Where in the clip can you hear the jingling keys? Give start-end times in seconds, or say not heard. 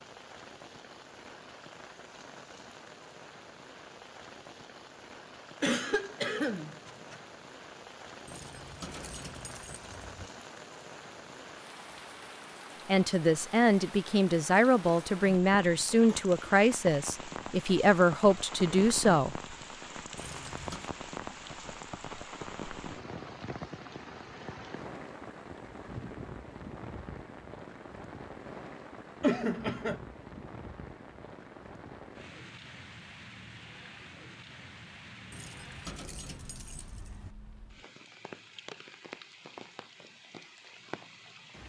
8.2-10.3, 20.1-20.9, 35.3-37.4.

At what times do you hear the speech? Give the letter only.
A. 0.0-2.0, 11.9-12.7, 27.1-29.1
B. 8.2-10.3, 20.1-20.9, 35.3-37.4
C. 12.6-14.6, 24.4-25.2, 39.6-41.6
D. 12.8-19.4
D.